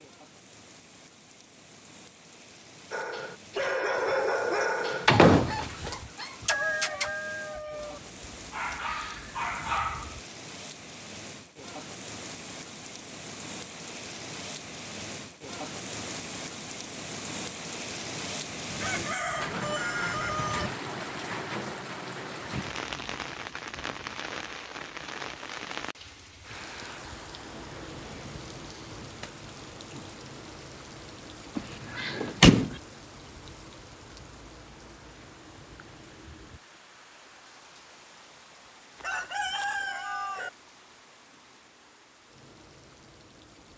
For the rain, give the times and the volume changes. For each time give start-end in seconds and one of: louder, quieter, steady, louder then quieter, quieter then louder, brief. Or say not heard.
0.0-43.7 louder then quieter.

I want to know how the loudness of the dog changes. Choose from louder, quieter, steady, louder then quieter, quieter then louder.
quieter then louder.